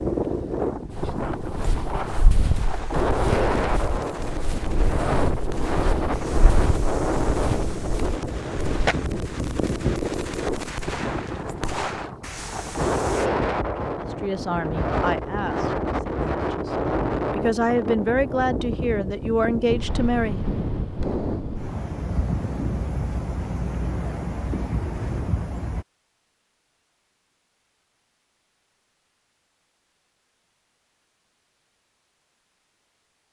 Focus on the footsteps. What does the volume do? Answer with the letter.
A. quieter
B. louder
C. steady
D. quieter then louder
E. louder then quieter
C.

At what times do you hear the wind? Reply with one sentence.
You can hear the wind from 0.0 to 25.9 s.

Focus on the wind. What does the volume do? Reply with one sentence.
The volume of the wind stays about the same.